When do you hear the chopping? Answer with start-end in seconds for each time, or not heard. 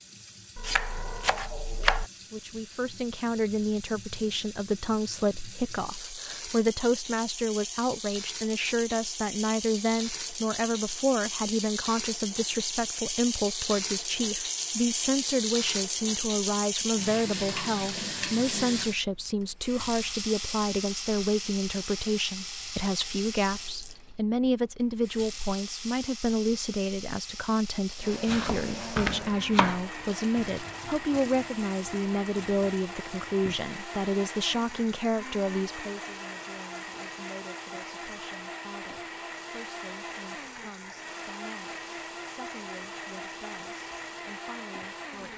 0.6-2.0, 28.2-29.8.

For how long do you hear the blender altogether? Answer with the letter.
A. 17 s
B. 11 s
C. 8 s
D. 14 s
A.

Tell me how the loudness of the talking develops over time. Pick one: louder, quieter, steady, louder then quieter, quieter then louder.
quieter.